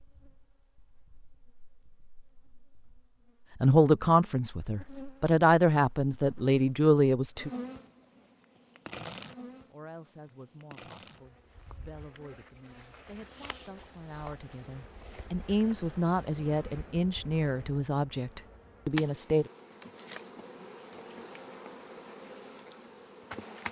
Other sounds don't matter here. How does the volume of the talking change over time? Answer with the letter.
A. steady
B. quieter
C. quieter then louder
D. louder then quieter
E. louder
C.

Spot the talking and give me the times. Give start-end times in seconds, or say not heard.
3.6-7.5, 9.7-19.5.